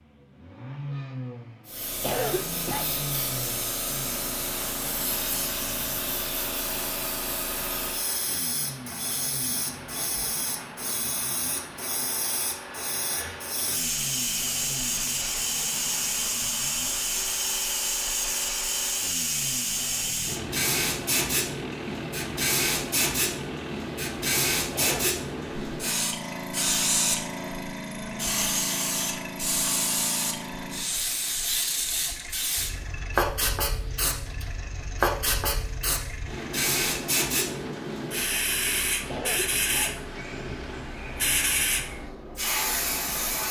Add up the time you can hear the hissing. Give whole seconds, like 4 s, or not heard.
42 s.